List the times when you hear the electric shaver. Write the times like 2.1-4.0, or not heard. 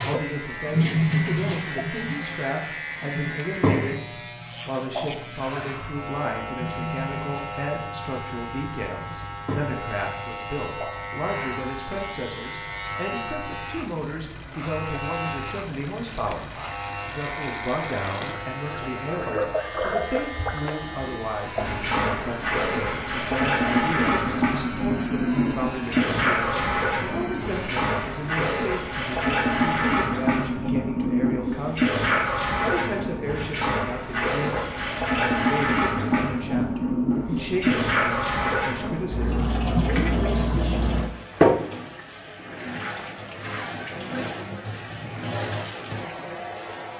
0.0-28.3.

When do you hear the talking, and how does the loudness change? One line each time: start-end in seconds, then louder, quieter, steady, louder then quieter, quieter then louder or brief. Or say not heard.
0.0-40.9 steady.